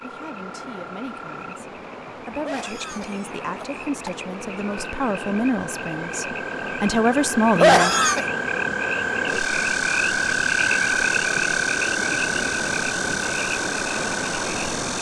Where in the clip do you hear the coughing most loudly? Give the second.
8 s.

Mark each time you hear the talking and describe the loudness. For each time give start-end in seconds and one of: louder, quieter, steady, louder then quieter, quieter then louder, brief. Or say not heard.
0.0-8.0 louder.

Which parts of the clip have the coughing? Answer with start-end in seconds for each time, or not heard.
2.4-4.2, 7.5-8.2.